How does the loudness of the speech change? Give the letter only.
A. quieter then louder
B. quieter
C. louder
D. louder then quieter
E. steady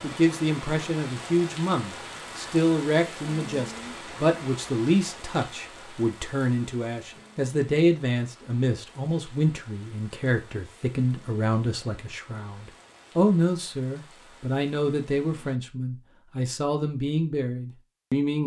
E.